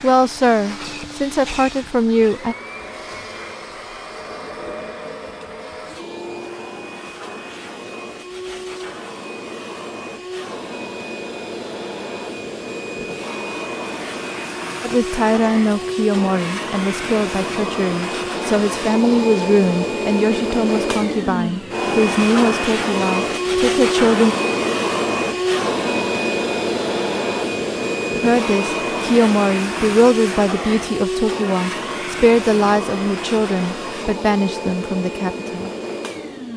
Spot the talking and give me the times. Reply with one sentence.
The talking can be heard from 0.0 to 2.5 s, from 14.8 to 24.4 s and from 28.2 to 35.7 s.